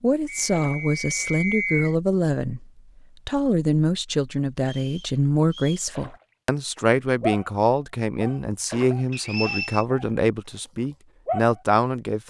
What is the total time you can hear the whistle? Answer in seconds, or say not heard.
4 s.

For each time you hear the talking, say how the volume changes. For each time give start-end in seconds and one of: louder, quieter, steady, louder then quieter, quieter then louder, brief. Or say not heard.
0.0-12.2 steady.